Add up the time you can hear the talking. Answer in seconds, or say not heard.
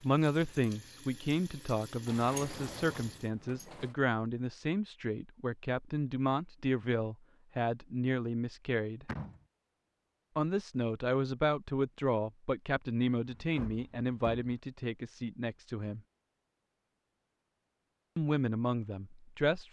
16 s.